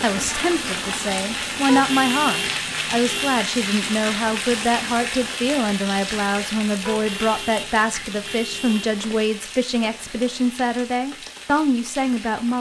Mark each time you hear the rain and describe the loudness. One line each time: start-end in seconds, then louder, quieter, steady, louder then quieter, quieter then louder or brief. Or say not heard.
0.0-12.5 quieter.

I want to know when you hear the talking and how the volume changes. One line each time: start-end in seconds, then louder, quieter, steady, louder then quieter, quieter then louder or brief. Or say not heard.
0.0-12.5 steady.